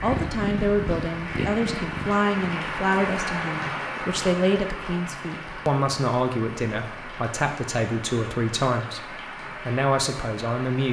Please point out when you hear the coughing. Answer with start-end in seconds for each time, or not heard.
not heard.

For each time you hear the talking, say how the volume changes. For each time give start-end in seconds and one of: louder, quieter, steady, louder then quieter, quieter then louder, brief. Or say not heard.
0.0-10.8 steady.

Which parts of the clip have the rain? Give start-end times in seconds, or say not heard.
0.0-10.8.